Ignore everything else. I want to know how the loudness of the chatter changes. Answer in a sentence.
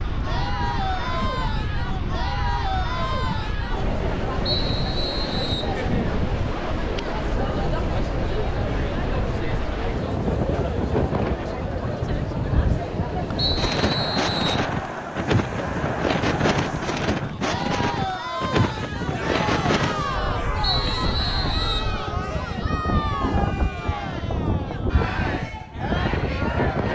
The loudness of the chatter stays about the same.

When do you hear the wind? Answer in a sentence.
The wind can be heard from 0.0 to 26.9 s.